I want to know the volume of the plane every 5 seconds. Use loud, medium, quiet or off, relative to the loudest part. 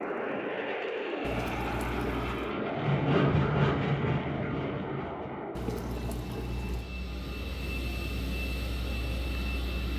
loud, medium.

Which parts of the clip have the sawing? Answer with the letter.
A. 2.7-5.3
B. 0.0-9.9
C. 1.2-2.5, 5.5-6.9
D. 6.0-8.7
A.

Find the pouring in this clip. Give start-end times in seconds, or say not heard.
1.2-2.5, 5.5-6.9.